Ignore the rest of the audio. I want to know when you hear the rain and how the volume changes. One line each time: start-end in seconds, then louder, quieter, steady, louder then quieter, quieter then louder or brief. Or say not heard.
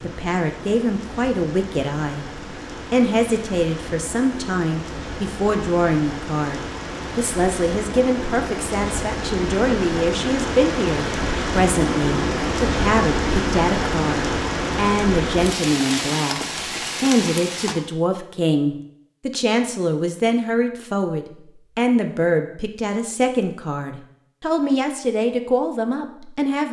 0.0-17.8 louder.